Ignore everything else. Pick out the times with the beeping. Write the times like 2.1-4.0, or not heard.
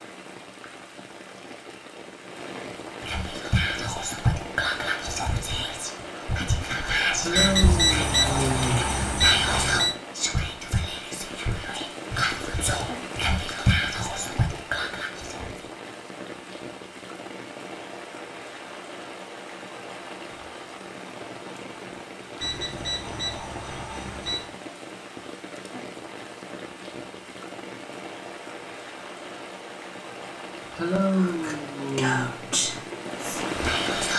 7.3-9.9, 22.4-24.6.